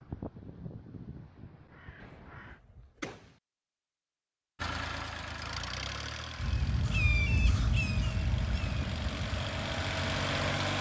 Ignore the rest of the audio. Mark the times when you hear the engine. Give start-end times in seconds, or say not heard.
4.5-10.7.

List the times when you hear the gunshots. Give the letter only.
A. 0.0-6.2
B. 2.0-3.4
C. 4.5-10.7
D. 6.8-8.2
B.